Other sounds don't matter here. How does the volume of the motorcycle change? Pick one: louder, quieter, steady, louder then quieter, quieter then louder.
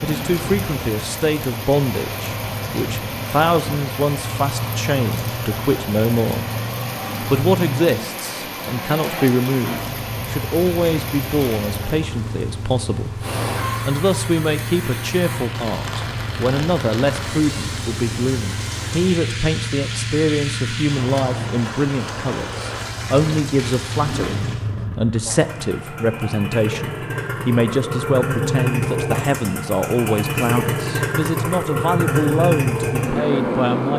louder.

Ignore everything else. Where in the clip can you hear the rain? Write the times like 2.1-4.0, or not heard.
0.0-24.7.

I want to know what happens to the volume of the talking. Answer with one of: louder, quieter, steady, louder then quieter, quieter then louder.
steady.